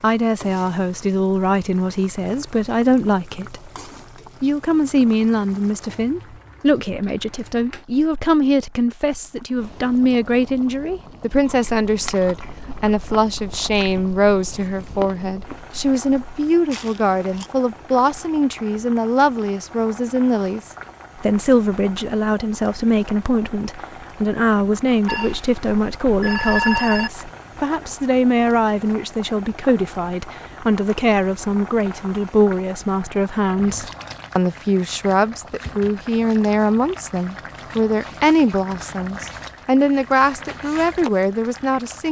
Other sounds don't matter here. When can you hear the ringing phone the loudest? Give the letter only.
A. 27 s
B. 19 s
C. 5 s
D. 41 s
A.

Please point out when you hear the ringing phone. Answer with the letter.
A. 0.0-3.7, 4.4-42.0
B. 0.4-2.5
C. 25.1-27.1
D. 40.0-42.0
C.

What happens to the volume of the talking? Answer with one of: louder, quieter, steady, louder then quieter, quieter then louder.
steady.